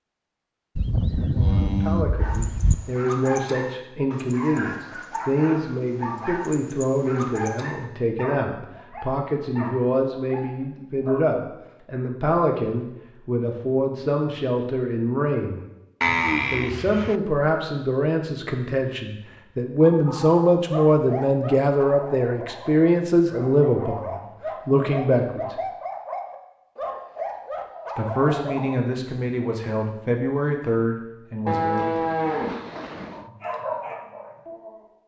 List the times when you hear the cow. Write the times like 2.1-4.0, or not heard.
0.8-2.8, 16.0-17.1, 31.4-33.2.